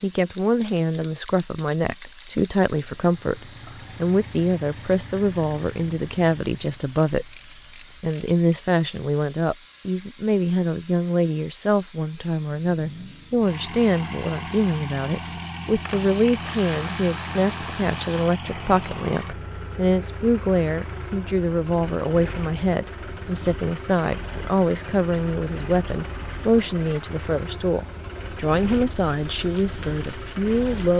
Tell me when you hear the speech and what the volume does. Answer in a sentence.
The speech can be heard from 0.0 to 7.3 s, at a steady volume; and from 8.0 to 30.9 s, at a steady volume.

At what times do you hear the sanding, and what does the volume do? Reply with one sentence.
You can't hear the sanding here.